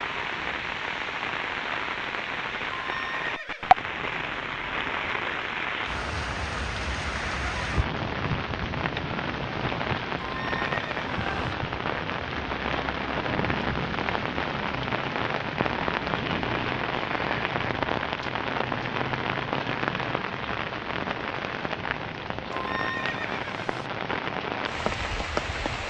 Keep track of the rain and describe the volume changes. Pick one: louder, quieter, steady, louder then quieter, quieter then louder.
steady.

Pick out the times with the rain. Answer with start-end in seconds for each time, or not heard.
0.0-25.8.